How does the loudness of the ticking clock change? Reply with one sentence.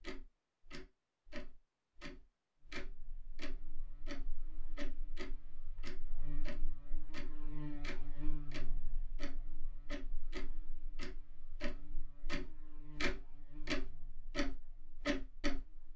The volume of the ticking clock goes up.